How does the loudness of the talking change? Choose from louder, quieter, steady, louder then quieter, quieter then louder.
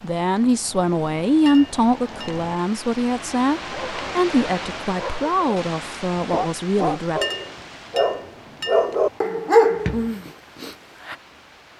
quieter.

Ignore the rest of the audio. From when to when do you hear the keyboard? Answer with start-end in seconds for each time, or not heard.
not heard.